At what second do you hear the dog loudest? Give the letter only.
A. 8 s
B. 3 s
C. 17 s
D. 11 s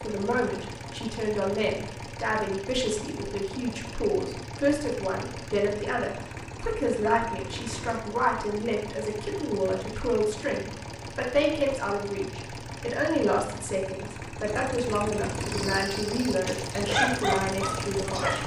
C.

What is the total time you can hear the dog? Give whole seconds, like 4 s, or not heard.
3 s.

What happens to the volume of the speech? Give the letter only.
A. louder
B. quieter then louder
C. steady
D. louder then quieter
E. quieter
C.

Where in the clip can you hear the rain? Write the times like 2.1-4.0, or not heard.
not heard.